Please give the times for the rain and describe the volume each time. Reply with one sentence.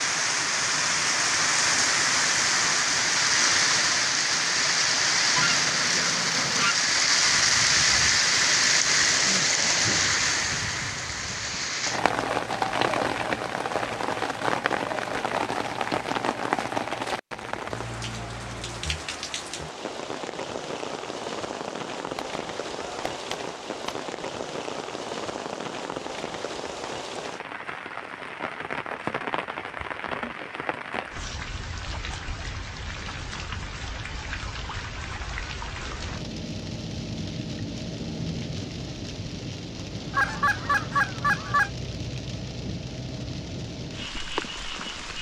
The rain can be heard from 0.0 to 45.1 s, getting quieter.